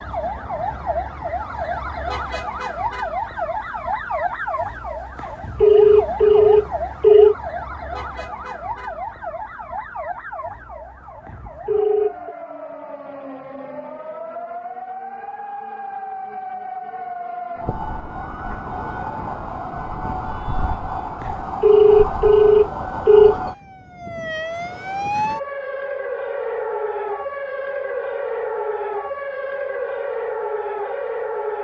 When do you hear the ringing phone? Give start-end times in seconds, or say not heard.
5.6-7.3, 11.2-12.3, 21.2-23.4.